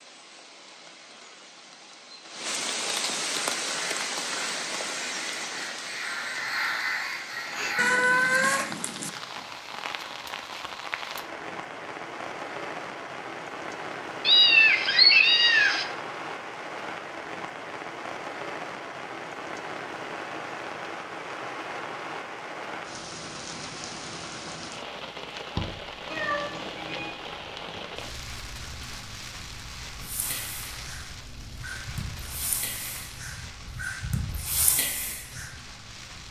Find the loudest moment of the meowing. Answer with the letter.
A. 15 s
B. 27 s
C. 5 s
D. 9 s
A.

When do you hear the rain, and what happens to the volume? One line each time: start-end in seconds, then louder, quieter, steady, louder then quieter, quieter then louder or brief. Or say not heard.
0.0-36.2 quieter.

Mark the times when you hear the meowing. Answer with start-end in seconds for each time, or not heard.
7.8-9.1, 14.2-15.8, 26.1-27.1.